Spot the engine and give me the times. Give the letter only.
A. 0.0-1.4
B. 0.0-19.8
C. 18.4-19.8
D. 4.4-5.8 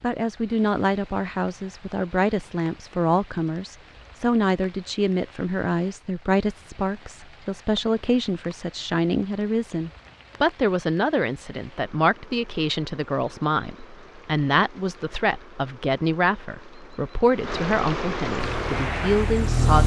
C.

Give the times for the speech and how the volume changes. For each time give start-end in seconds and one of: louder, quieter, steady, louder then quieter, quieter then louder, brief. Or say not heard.
0.0-19.8 steady.